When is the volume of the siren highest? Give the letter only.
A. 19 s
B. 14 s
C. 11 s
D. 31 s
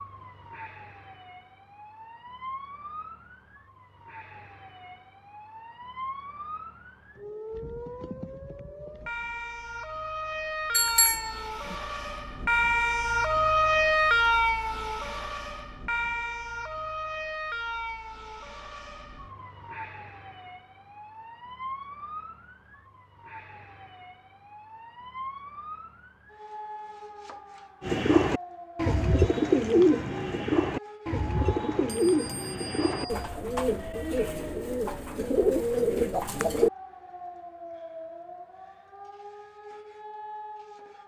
B.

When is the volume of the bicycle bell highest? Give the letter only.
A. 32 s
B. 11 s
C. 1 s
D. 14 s
B.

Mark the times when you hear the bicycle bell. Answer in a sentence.
You can hear the bicycle bell from 10.7 to 11.8 s and from 31.4 to 33.3 s.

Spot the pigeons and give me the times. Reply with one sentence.
You can hear the pigeons from 27.8 to 36.7 s.